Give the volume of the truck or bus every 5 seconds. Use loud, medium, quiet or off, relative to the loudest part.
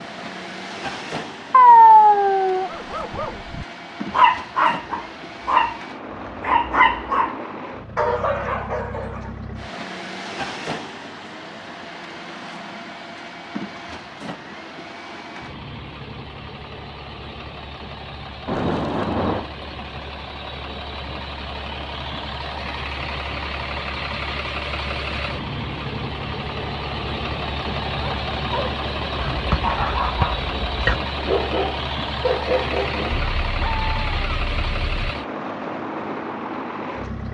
medium, medium, medium, medium, loud, loud, loud, loud.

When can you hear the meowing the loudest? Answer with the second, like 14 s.
2 s.